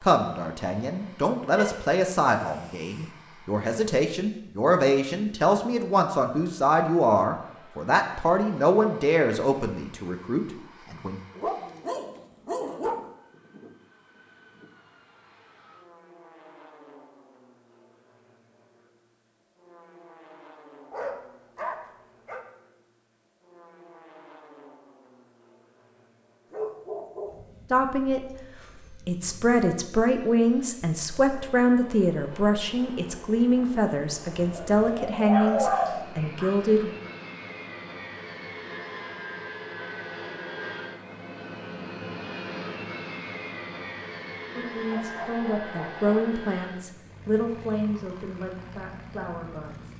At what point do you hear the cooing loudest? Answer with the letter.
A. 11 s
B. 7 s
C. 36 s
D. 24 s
C.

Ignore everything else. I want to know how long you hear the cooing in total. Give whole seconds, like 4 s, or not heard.
2 s.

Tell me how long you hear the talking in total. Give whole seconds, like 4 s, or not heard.
25 s.